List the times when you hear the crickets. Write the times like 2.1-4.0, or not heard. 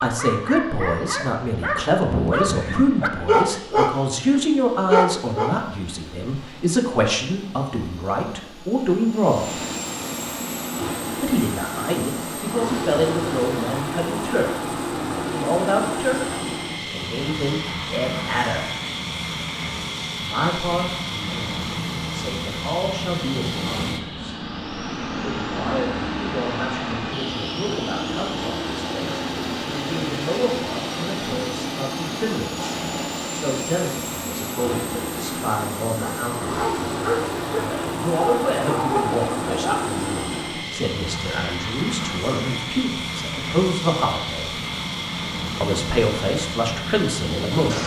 not heard.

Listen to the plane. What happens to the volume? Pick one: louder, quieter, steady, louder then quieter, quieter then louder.
louder.